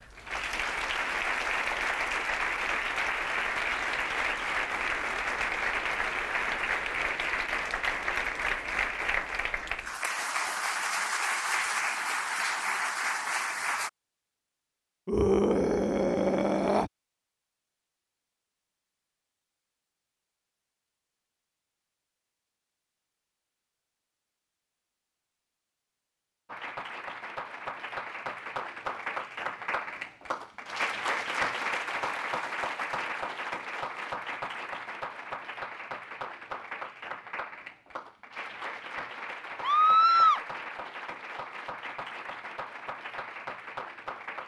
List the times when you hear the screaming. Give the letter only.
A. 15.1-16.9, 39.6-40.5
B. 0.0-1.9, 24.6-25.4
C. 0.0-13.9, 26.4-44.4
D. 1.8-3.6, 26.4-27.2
A.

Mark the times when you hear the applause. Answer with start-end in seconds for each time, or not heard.
0.0-13.9, 26.4-44.4.